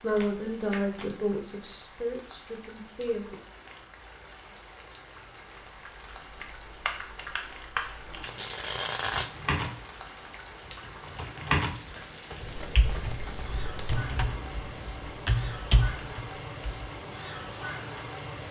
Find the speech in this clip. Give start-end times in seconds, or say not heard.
0.0-3.4.